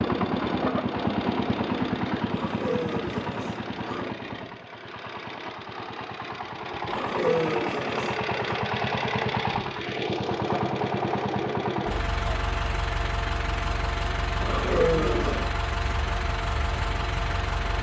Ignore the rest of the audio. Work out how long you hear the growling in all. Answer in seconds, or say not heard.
5 s.